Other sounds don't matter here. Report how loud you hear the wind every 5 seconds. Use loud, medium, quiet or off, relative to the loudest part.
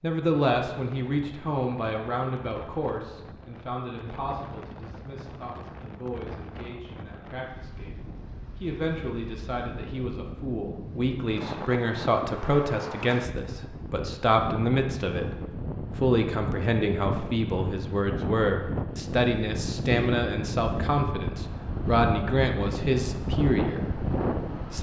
quiet, quiet, medium, loud, loud.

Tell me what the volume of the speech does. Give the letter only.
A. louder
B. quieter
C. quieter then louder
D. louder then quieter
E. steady
C.